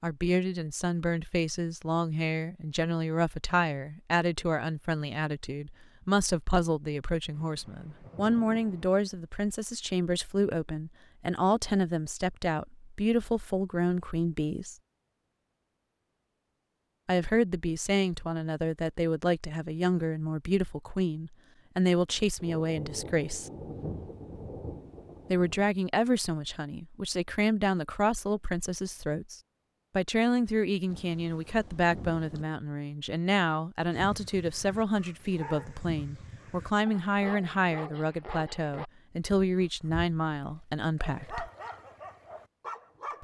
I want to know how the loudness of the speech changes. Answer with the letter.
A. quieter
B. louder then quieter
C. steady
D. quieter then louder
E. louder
C.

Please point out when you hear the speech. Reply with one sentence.
You can hear the speech from 0.0 to 14.8 s, from 17.1 to 23.5 s and from 25.3 to 41.5 s.